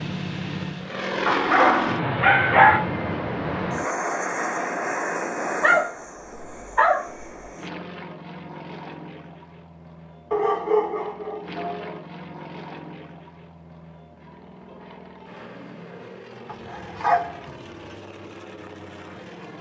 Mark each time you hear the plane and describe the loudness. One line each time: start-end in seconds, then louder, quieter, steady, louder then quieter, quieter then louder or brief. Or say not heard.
0.0-19.5 quieter.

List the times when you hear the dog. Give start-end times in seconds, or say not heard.
1.2-2.9, 5.6-7.3, 10.3-12.0, 16.4-17.9.